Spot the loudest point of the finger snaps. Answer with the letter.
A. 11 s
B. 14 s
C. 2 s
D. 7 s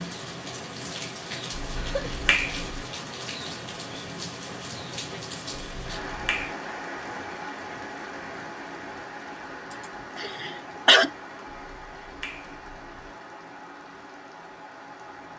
C.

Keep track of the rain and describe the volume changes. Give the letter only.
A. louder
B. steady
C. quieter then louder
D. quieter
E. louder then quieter
D.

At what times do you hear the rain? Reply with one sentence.
The rain can be heard from 0.0 to 15.3 s.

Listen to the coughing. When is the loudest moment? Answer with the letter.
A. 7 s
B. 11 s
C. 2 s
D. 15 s
B.